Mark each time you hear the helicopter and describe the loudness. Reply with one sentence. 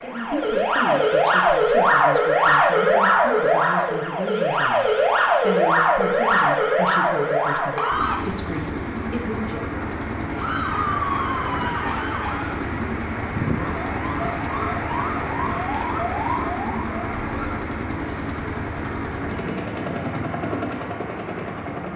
You can hear the helicopter from 7.9 to 21.9 s, at a steady volume.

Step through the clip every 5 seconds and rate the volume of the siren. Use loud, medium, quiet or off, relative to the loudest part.
loud, loud, medium, medium, off.